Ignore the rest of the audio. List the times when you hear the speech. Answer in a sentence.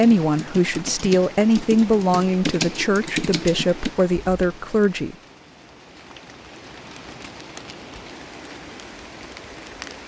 The speech can be heard from 0.0 to 5.2 s.